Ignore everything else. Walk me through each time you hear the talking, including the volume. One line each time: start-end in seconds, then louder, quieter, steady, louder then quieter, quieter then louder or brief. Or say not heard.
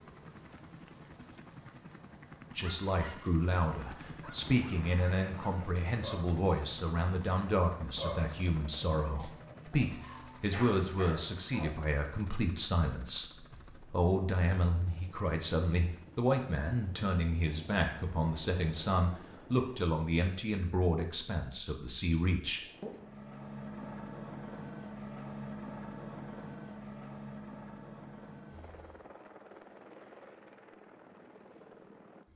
2.5-22.9 steady.